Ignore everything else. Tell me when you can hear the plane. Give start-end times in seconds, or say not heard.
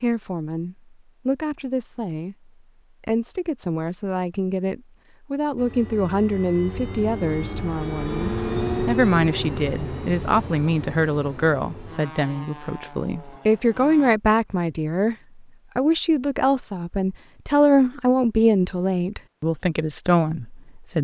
5.5-14.2.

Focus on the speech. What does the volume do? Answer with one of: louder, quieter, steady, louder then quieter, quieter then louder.
louder.